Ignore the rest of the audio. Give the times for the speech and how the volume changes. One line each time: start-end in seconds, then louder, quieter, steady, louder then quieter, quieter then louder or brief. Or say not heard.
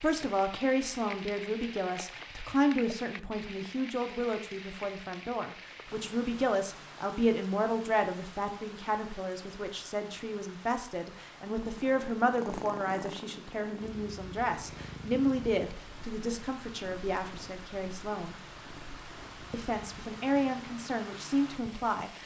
0.0-18.4 steady
19.5-22.2 brief.